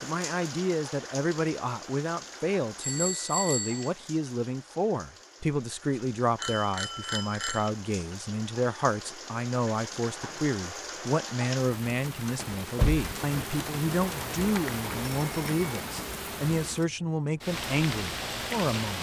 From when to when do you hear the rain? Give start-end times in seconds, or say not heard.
0.0-18.9.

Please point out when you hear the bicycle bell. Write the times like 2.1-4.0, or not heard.
2.8-3.9, 6.3-7.7, 14.1-15.9.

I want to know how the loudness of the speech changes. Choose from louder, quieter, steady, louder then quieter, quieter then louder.
steady.